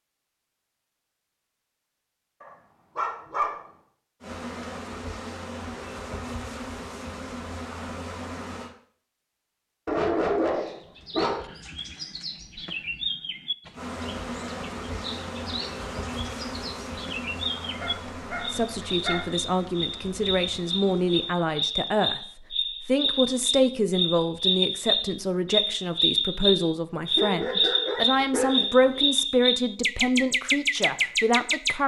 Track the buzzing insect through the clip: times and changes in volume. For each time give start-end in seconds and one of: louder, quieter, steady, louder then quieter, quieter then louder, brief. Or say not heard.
4.2-8.7 steady
13.7-21.4 quieter.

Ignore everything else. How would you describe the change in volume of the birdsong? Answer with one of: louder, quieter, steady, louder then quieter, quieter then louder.
louder.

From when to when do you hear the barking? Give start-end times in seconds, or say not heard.
2.4-3.6, 9.8-11.4, 17.8-19.3, 27.1-29.0.